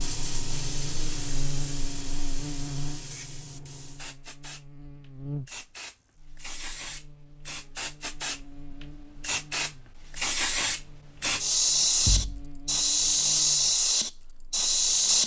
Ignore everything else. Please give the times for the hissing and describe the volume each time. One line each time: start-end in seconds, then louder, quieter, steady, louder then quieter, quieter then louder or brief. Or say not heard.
0.0-15.2 quieter then louder.